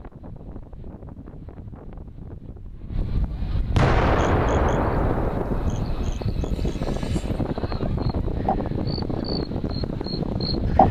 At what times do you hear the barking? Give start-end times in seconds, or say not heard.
not heard.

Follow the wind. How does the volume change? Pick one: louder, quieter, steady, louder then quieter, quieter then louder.
louder.